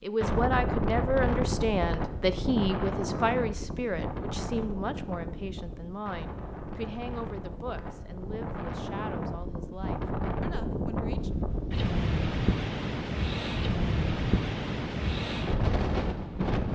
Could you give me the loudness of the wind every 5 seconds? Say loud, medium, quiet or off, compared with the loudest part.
loud, medium, loud, loud.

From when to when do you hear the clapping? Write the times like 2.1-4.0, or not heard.
not heard.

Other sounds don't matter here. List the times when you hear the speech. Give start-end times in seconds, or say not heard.
0.0-11.3.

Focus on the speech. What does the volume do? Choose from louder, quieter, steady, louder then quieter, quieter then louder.
quieter.